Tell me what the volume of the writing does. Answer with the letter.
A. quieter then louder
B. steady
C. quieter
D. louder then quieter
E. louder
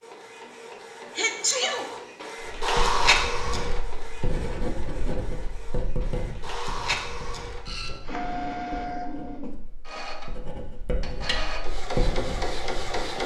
A.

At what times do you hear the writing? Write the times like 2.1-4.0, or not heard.
2.6-13.0.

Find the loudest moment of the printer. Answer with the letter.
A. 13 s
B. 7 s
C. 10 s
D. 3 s
D.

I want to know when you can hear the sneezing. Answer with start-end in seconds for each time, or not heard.
1.1-1.9.